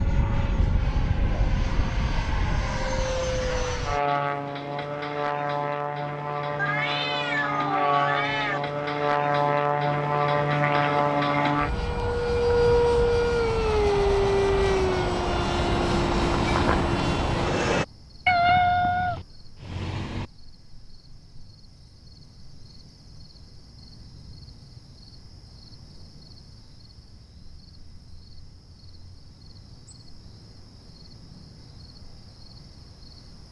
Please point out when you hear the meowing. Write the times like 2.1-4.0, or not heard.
6.5-8.6, 18.2-20.2.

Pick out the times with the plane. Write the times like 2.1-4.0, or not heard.
0.0-17.9.